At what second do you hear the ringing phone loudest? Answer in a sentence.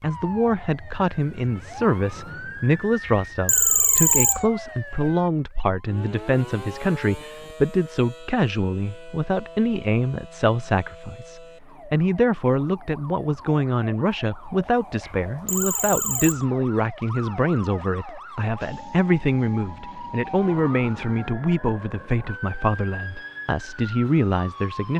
The loudest moment of the ringing phone is at 4 seconds.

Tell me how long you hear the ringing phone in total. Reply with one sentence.
The ringing phone can be heard for 3 seconds in total.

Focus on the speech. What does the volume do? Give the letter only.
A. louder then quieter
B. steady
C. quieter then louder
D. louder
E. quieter
B.